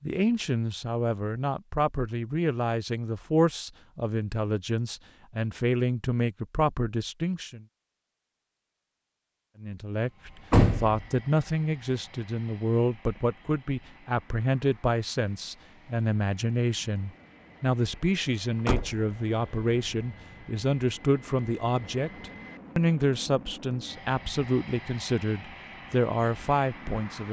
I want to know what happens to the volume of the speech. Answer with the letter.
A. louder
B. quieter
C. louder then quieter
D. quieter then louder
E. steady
E.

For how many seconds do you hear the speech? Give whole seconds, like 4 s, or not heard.
25 s.